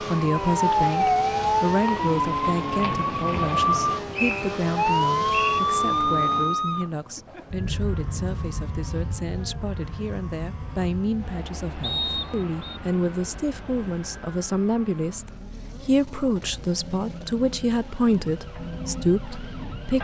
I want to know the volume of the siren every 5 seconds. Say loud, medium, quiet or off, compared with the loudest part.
loud, loud, quiet, quiet.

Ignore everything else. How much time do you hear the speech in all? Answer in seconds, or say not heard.
20 s.